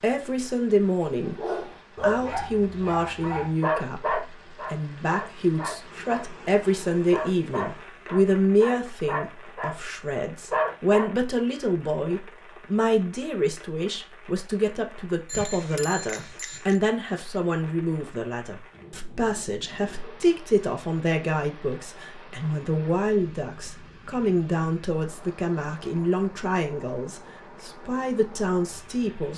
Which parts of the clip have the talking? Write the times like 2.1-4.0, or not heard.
0.0-1.4, 2.0-29.3.